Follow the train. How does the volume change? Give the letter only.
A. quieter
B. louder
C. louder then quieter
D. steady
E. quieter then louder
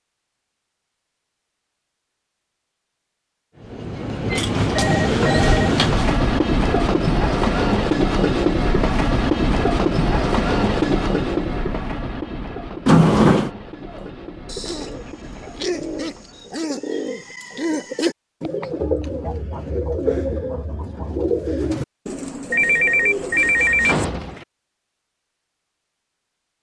A.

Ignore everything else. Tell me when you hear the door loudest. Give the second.
13 s.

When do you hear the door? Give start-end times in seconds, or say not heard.
4.3-6.2, 12.8-13.5, 23.9-24.4.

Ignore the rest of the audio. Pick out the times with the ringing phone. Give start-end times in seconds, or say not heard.
4.3-5.7, 22.5-24.1.